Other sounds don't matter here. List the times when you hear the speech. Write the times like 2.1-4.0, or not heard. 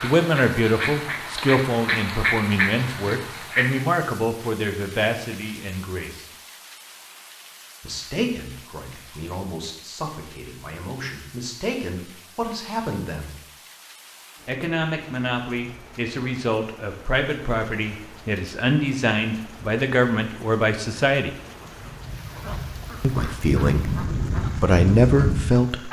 0.0-6.3, 7.8-13.4, 14.4-21.4, 23.0-25.8.